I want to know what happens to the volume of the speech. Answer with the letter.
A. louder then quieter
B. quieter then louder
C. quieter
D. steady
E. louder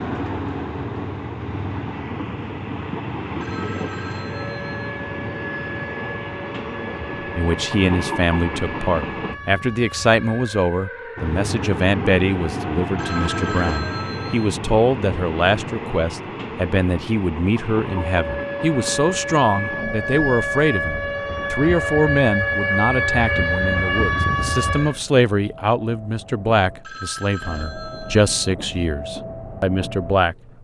D.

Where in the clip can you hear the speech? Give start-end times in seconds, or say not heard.
7.3-30.4.